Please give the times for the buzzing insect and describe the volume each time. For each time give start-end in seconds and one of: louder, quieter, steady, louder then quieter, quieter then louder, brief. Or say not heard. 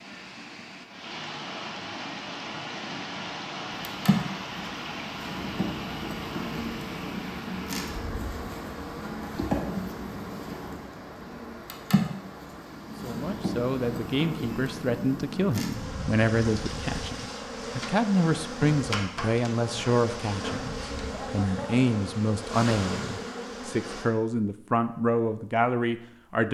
3.9-24.1 steady.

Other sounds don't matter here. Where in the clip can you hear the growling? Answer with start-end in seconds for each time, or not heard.
not heard.